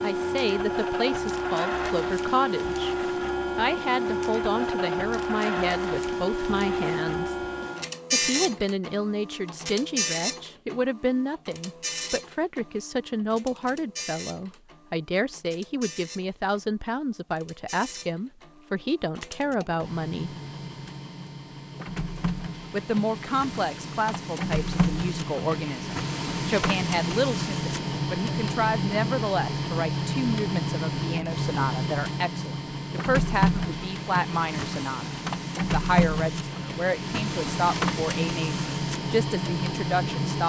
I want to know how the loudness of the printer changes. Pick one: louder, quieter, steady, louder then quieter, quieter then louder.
quieter then louder.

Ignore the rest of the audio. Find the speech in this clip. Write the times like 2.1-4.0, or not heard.
0.0-7.3, 8.1-20.4, 22.7-35.1, 35.7-40.4.